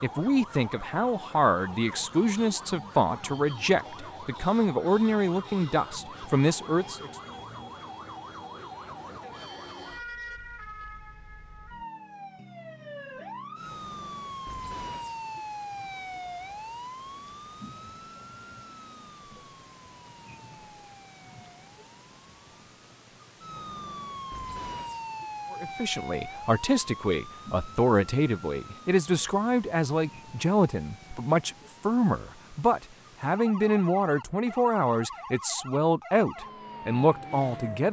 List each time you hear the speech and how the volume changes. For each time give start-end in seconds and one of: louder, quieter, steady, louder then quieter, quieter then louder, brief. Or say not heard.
0.0-7.1 steady
25.5-37.8 steady.